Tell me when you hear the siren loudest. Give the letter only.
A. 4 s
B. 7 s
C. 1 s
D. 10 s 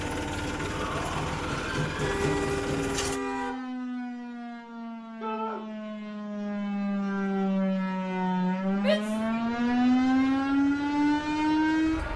D.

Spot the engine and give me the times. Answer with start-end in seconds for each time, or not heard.
0.0-3.2, 9.1-12.1.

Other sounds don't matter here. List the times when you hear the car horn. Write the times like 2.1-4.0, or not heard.
2.0-3.5.